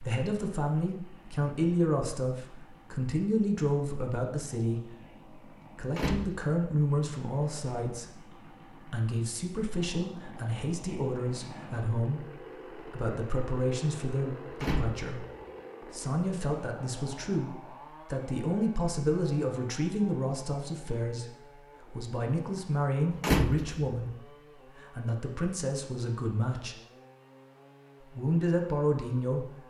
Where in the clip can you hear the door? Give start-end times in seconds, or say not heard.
5.8-6.3, 14.5-15.1, 23.1-23.9.